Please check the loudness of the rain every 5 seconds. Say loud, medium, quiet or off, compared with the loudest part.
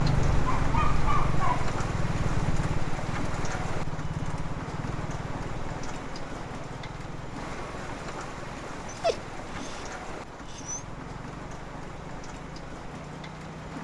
loud, loud, medium.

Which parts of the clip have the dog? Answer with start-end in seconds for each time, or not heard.
0.5-1.7, 8.8-10.8.